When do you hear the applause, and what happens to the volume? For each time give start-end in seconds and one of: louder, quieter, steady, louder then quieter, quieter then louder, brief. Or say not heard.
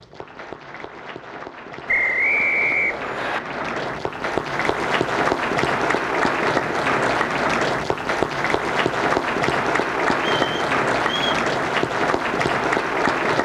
0.0-13.4 louder.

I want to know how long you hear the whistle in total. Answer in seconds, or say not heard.
3 s.